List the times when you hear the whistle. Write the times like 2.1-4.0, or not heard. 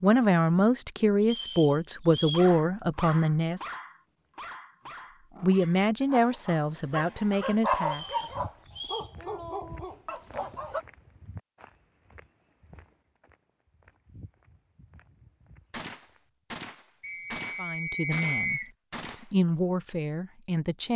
1.2-2.5, 7.9-9.1, 17.0-18.7.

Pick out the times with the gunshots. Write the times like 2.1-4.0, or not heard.
15.7-19.3.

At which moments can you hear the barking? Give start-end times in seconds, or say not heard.
2.3-10.8.